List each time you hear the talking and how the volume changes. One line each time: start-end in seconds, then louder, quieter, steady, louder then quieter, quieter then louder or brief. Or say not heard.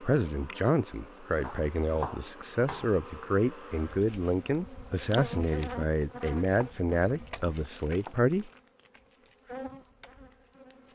0.0-8.5 steady.